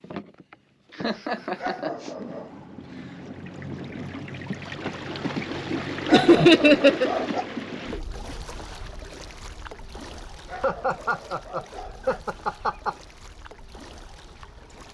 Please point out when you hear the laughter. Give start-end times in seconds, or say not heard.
0.9-2.1, 6.1-7.1, 10.5-12.9.